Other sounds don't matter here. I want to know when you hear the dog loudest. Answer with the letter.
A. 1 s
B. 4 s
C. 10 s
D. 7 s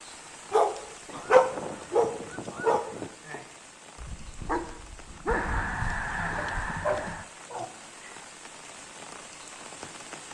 A.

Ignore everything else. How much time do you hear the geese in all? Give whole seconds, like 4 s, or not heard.
4 s.